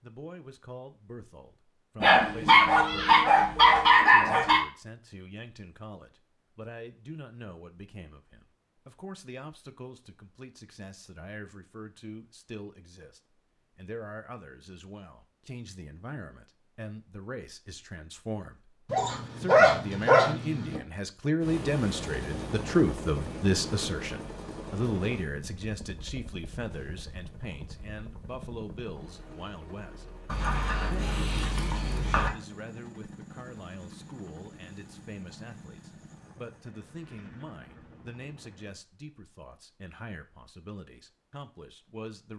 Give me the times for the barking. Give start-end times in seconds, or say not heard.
2.0-4.6, 18.9-20.8, 30.2-32.3.